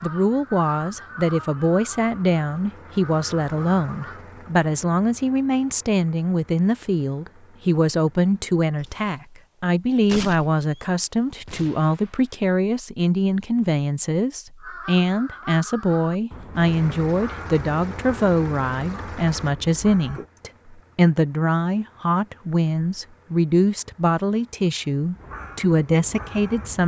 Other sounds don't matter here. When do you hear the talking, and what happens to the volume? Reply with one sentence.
You can hear the talking from 0.0 to 26.8 s, at a steady volume.